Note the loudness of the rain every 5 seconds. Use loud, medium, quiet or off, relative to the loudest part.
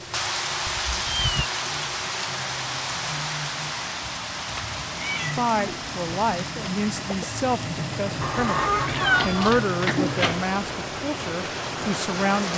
loud, medium, loud.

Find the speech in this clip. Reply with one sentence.
The speech can be heard from 5.2 to 12.5 s.